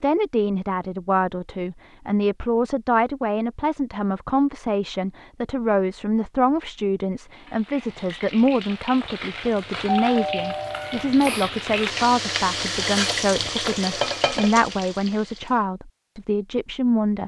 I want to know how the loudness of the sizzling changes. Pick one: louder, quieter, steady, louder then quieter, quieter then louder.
louder.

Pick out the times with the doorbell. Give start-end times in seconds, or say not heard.
10.1-11.5.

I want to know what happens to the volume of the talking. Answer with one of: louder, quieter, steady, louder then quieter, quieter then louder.
steady.